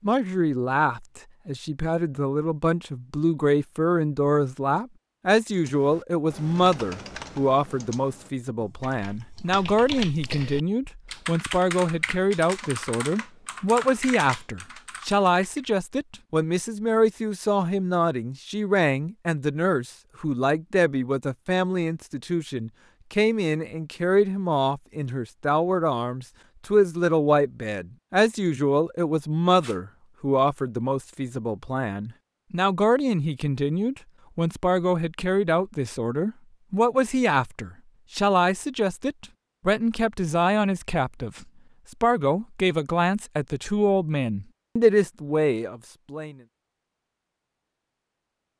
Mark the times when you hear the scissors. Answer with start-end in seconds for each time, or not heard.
not heard.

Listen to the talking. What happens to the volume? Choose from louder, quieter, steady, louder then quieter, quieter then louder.
steady.